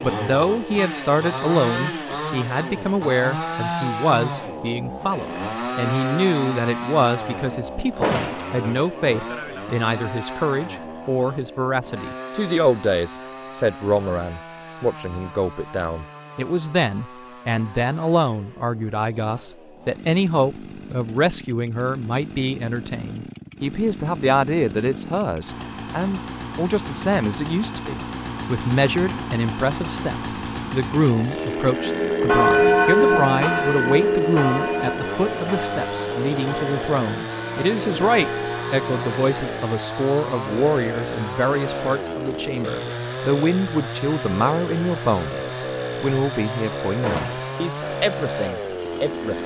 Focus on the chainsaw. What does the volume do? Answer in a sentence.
The volume of the chainsaw goes down, then up.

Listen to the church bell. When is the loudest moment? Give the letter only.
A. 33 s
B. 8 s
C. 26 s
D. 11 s
A.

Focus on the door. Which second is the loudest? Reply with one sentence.
The loudest moment of the door is at 8 seconds.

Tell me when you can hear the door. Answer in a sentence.
The door can be heard from 8.0 to 8.6 s and from 47.0 to 47.5 s.